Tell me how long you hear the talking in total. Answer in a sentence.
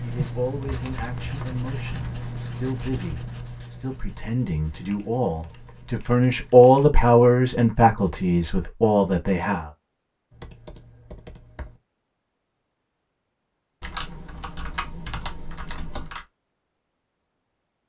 The talking can be heard for 10 seconds in total.